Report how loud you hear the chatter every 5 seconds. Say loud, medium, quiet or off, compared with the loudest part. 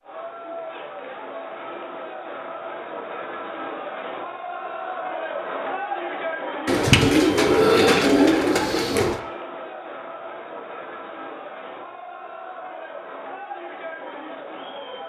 loud, loud, medium.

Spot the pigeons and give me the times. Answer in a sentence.
The pigeons can be heard from 6.7 to 9.2 s.